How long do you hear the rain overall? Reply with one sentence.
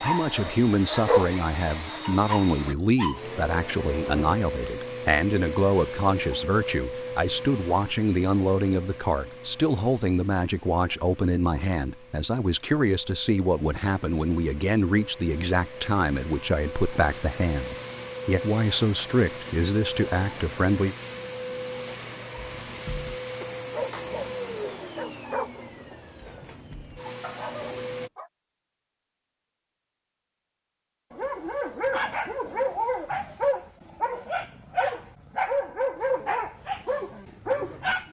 The rain can't be heard in this clip.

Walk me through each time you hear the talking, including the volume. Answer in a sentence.
The talking can be heard from 0.0 to 20.9 s, at a steady volume.